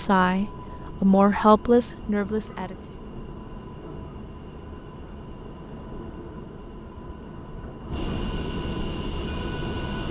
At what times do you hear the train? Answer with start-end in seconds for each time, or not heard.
0.0-10.0.